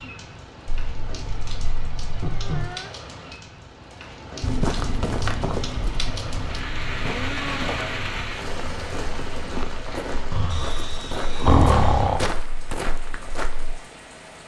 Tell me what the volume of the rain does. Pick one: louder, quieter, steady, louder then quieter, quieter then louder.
louder then quieter.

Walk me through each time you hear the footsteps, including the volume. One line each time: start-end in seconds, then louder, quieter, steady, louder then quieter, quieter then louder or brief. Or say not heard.
4.4-13.8 quieter then louder.